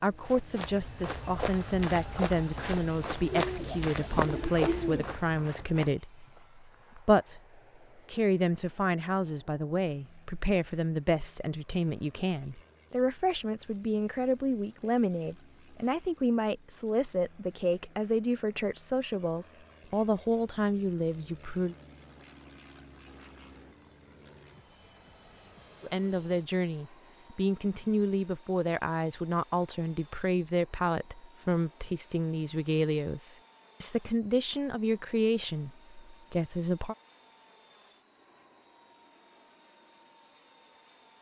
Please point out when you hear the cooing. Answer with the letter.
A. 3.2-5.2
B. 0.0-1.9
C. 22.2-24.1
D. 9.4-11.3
A.